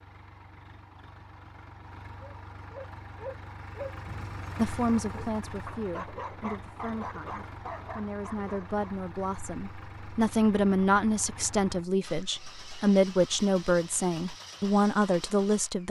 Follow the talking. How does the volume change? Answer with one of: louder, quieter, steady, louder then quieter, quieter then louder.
louder.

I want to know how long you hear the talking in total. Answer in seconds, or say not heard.
11 s.